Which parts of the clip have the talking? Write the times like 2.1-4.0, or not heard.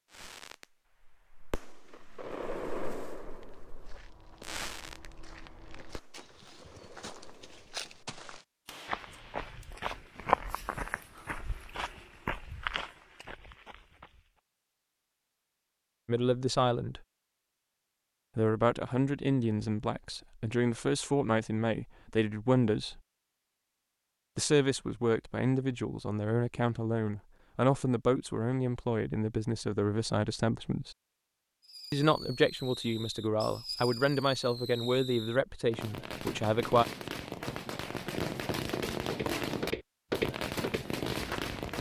16.1-17.0, 18.4-23.0, 24.4-30.9, 31.9-36.9.